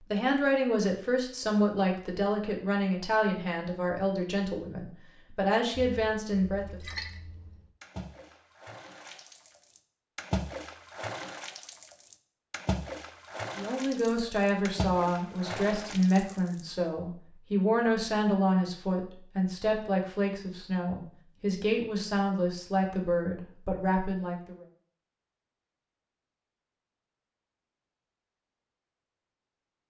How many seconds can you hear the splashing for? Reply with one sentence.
You can hear the splashing for 11 seconds altogether.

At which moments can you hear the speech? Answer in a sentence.
The speech can be heard from 0.1 to 6.8 s and from 13.6 to 24.6 s.